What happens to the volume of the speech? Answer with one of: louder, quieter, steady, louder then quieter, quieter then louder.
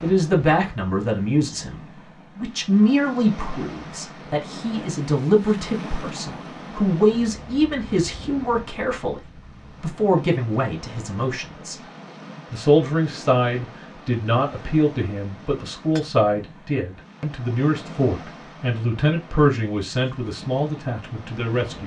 steady.